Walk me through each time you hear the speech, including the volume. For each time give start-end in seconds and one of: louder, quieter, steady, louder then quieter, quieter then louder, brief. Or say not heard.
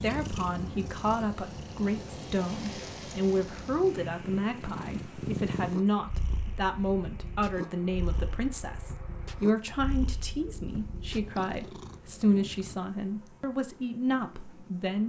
0.0-15.0 steady.